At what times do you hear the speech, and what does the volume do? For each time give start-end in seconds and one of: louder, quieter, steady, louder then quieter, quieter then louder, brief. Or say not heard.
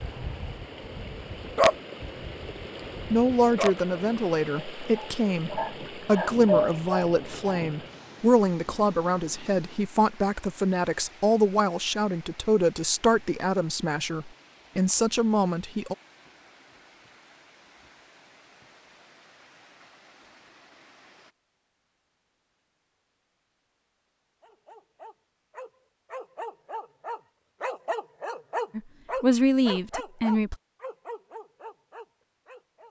3.1-15.9 steady
28.8-30.6 brief.